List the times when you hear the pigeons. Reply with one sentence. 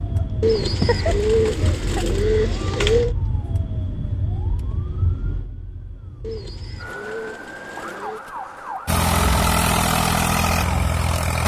The pigeons can be heard from 0.4 to 3.1 s and from 6.2 to 8.2 s.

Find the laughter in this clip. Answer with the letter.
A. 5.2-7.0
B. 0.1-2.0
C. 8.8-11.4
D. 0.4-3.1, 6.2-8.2
B.